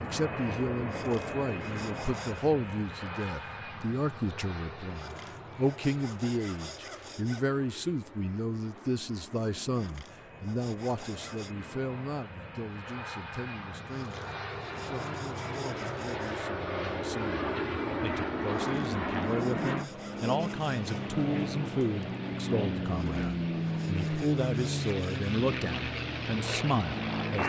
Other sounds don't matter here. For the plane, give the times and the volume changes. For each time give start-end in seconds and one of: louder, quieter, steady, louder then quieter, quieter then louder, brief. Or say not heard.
0.0-27.4 quieter then louder.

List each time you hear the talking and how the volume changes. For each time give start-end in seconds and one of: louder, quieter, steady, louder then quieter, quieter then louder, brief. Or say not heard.
0.0-27.4 quieter then louder.